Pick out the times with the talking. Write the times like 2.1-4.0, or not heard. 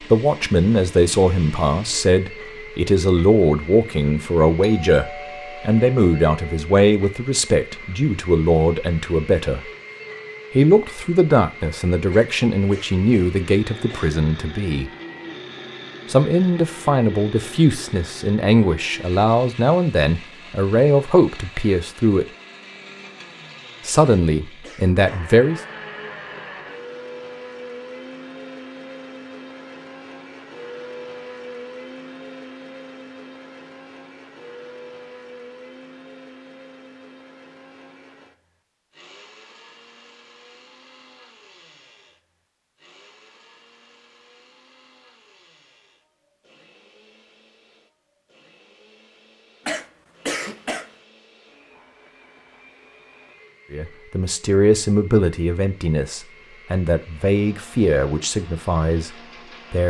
0.0-9.7, 10.6-14.9, 16.1-22.2, 23.9-25.6, 53.7-59.8.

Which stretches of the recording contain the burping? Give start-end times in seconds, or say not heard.
not heard.